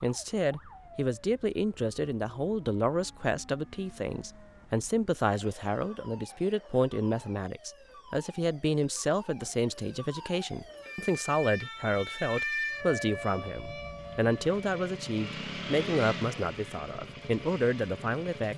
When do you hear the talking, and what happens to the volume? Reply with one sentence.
You can hear the talking from 0.0 to 18.5 s, at a steady volume.